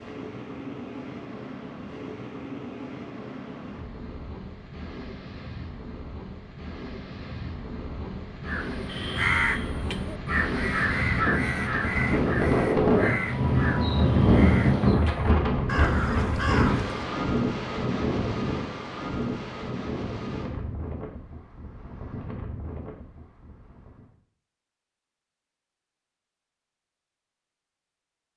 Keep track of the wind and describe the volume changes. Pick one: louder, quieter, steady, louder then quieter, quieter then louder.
louder then quieter.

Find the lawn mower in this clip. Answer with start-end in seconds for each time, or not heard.
not heard.